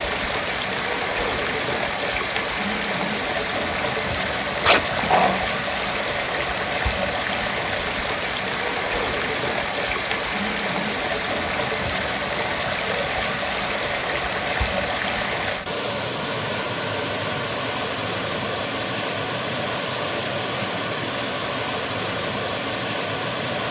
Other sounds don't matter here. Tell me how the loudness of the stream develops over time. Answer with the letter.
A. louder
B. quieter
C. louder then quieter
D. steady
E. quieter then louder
D.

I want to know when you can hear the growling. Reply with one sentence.
You can hear the growling from 4.7 to 5.4 s.